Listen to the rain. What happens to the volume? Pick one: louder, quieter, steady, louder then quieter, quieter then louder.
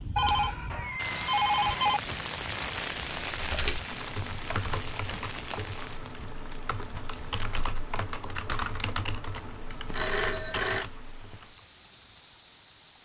quieter.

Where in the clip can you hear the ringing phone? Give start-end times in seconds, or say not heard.
0.1-2.0, 9.8-10.9.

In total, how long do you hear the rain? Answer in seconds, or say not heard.
13 s.